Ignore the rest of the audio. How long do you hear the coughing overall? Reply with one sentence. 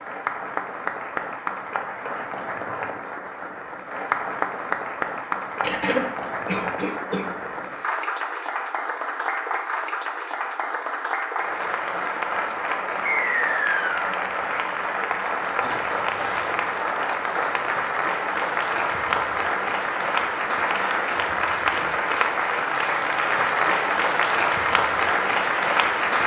The coughing can be heard for 3 seconds in total.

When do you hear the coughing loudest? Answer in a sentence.
The volume of the coughing peaks at 6 seconds.